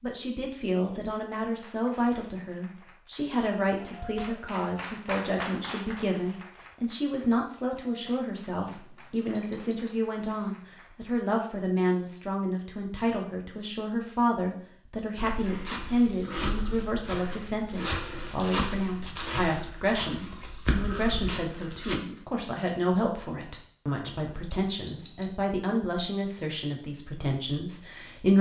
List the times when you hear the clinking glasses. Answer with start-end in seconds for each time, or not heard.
8.7-9.9, 24.1-25.2.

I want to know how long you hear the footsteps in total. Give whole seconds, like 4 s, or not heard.
7 s.